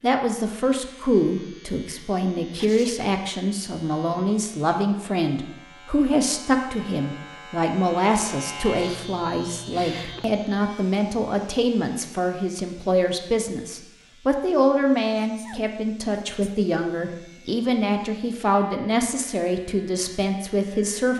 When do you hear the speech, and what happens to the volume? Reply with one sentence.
The speech can be heard from 0.0 to 21.1 s, at a steady volume.